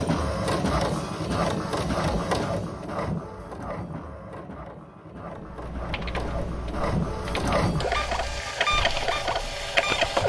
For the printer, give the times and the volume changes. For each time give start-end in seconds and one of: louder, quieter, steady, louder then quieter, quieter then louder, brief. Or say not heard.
0.0-10.2 quieter then louder.